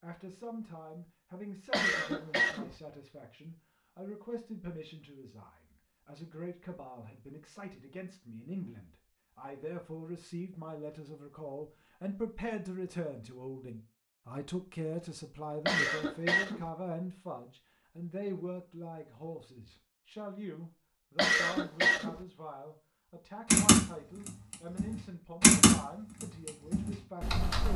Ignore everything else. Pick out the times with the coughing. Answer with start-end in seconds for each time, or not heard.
1.7-2.8, 15.7-16.6, 21.1-22.2.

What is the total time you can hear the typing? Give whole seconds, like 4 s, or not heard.
4 s.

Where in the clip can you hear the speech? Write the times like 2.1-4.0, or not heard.
0.0-27.7.